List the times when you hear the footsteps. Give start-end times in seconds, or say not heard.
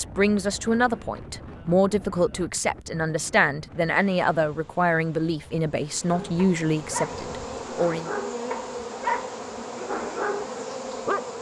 not heard.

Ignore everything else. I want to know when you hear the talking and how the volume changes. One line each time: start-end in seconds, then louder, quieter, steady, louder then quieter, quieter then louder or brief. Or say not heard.
0.0-8.1 steady.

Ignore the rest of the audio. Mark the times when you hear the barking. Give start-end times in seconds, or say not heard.
6.1-11.2.